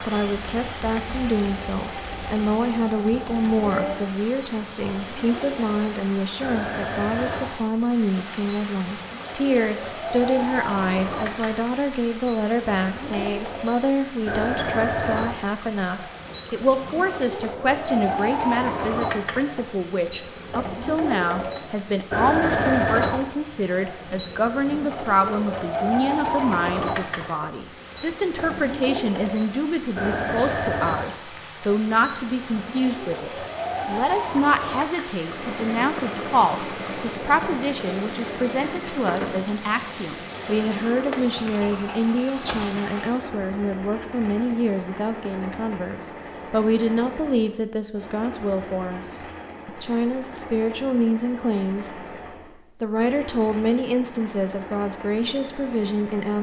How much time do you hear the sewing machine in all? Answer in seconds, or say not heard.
56 s.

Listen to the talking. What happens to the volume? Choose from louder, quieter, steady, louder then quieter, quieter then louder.
steady.